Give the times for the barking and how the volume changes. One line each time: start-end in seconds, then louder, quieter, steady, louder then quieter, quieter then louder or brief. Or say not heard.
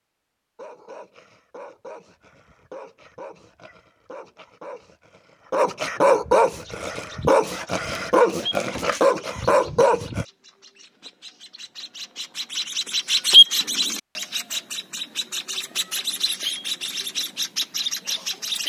0.6-10.2 louder.